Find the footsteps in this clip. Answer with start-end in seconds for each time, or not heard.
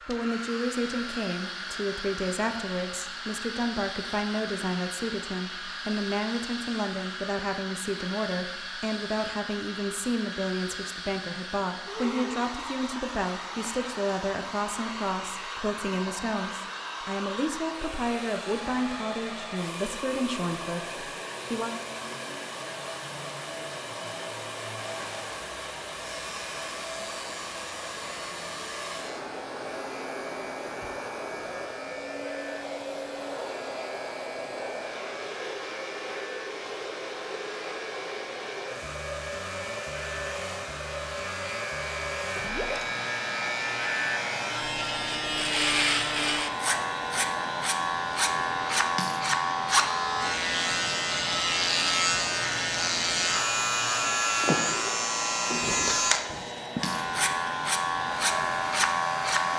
not heard.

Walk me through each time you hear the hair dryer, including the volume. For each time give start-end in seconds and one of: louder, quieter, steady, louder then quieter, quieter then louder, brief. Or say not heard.
0.0-59.5 steady.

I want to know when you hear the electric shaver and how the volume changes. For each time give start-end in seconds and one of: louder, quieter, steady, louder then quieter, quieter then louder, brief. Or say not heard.
24.8-59.5 louder.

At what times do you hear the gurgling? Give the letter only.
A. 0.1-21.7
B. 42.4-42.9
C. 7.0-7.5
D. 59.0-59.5
B.